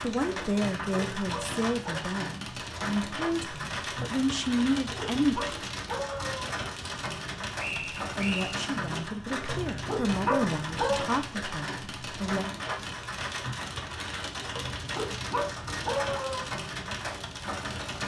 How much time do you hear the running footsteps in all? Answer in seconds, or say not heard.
not heard.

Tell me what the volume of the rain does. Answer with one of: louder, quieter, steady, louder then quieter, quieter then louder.
steady.